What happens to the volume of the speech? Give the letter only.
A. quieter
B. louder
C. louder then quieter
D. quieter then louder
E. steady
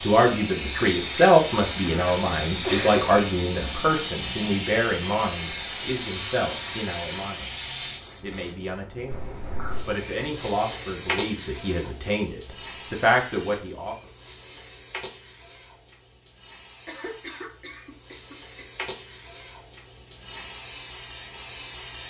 D.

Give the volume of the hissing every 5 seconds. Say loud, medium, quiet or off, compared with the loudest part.
loud, loud, medium, quiet, medium.